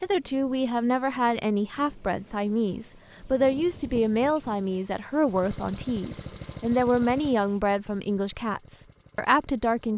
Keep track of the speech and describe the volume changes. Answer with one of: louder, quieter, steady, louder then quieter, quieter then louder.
steady.